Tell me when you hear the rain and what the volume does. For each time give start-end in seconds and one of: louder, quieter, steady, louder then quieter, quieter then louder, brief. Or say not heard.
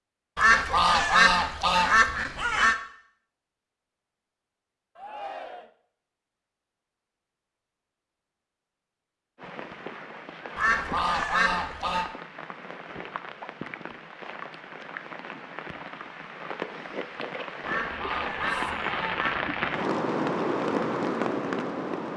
9.3-22.1 louder.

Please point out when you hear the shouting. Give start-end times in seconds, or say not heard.
5.0-5.7, 18.4-18.9.